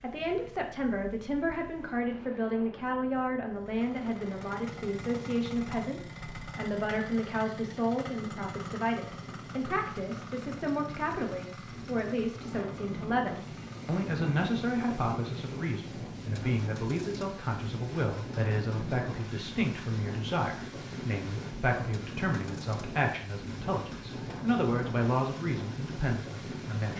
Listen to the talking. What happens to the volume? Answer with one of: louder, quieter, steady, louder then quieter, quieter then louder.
steady.